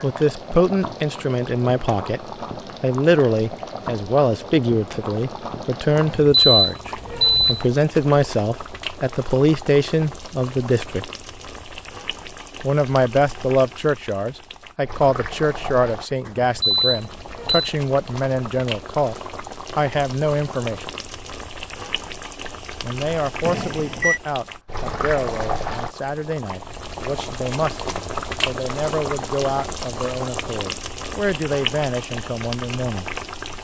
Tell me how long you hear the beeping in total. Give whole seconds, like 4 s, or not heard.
4 s.